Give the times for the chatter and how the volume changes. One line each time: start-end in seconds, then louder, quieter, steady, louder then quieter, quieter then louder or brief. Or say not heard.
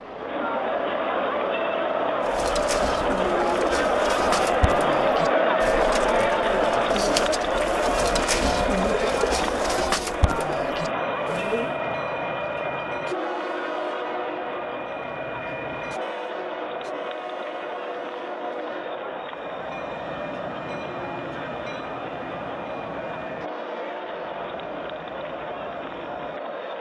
0.0-26.7 quieter.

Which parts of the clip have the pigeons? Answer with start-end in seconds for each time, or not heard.
2.2-11.8.